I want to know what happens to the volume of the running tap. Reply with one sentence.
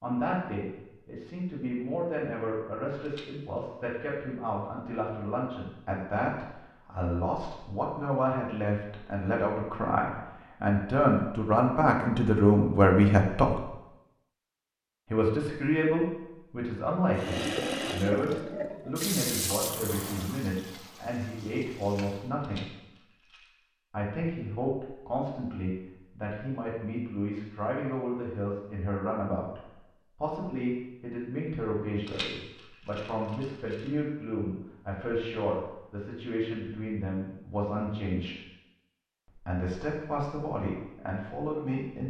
The loudness of the running tap goes down.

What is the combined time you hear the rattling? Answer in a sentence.
The rattling can be heard for 4 seconds in total.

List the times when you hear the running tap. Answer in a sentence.
The running tap can be heard from 17.1 to 22.3 s.